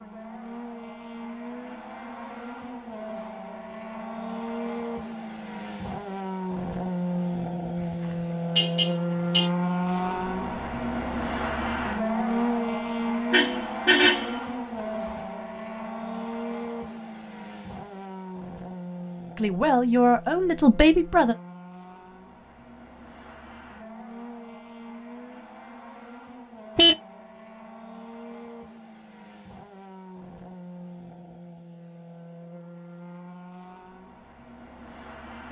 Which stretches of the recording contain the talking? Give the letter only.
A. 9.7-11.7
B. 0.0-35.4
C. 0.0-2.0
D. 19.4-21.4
D.